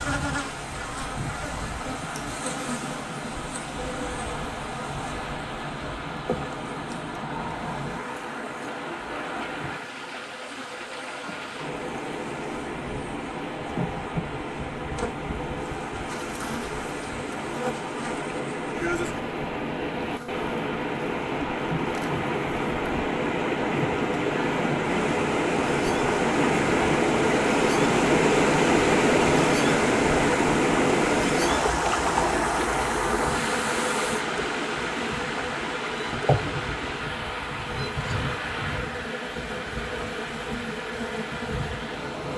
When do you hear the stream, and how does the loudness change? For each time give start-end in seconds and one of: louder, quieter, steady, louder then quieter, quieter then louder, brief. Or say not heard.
0.0-42.3 louder then quieter.